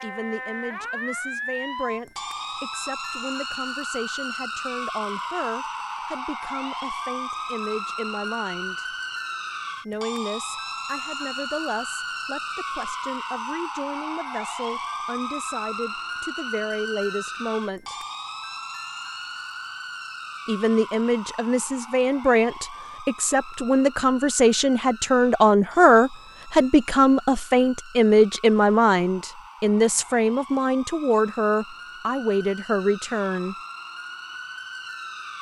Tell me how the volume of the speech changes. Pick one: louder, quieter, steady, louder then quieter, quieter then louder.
louder.